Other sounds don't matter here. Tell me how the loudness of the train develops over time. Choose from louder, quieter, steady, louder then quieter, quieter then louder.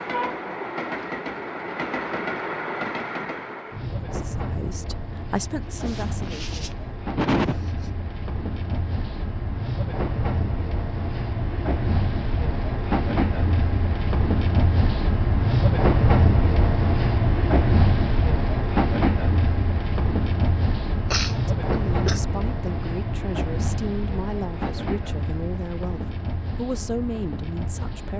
louder then quieter.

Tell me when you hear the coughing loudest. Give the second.
7 s.